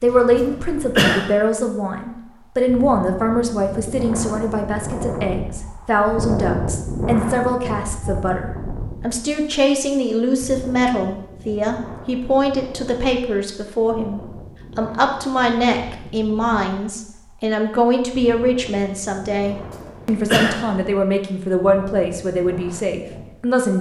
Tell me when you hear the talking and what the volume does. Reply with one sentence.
You can hear the talking from 0.0 to 23.7 s, at a steady volume.